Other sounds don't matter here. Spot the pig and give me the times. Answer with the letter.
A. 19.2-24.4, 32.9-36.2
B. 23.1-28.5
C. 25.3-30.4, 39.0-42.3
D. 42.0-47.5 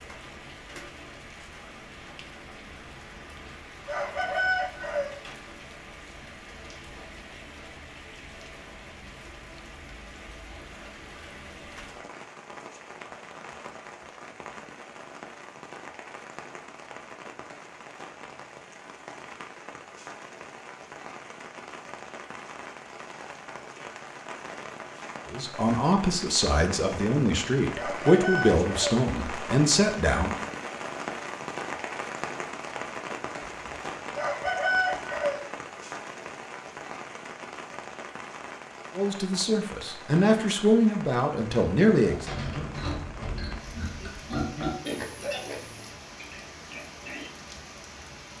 D.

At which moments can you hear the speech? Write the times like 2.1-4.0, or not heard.
25.3-30.4, 39.0-42.3.